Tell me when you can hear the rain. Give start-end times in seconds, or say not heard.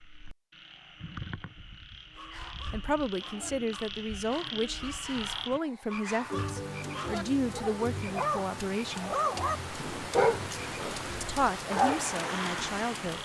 6.2-13.1.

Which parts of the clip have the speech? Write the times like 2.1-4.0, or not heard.
2.7-9.2, 11.2-13.1.